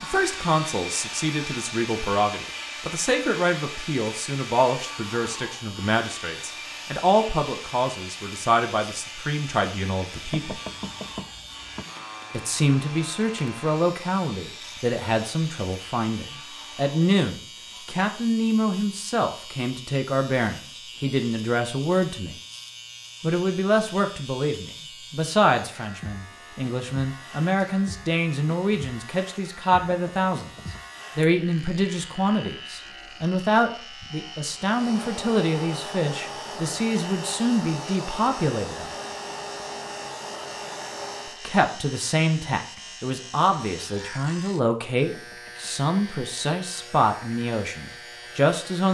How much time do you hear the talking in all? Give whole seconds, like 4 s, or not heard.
43 s.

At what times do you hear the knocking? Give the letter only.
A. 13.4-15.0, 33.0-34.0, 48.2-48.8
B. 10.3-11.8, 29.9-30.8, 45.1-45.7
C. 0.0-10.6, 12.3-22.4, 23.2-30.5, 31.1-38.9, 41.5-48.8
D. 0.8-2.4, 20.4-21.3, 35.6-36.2
B.